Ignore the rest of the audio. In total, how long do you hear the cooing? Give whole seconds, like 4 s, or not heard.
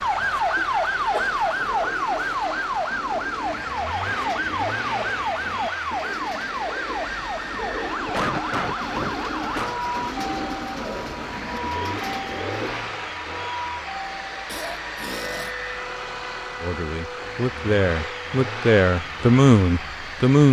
12 s.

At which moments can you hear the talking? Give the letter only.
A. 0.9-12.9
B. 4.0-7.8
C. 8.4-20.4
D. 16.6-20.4
D.